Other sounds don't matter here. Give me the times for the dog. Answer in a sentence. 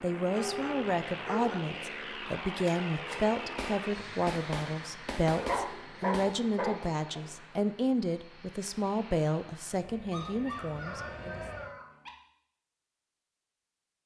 The dog can be heard from 0.3 to 1.6 s, from 5.3 to 7.2 s and from 10.1 to 12.1 s.